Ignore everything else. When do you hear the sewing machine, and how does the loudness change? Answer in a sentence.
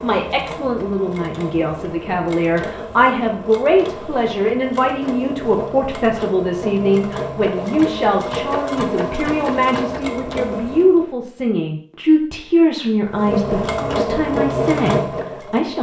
You can hear the sewing machine from 0.0 to 11.1 s, getting louder; and briefly from 13.1 to 15.7 s.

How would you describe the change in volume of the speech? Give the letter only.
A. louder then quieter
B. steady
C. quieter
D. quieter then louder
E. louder
B.